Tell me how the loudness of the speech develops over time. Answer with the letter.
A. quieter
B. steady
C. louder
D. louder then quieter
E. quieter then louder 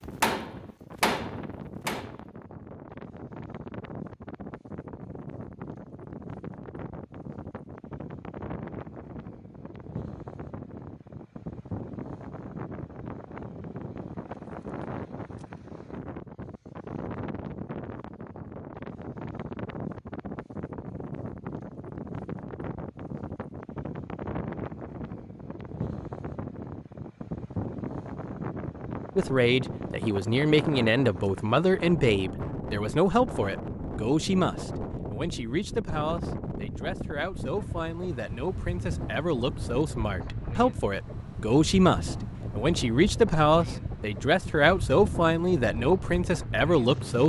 E.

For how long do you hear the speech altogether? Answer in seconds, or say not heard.
18 s.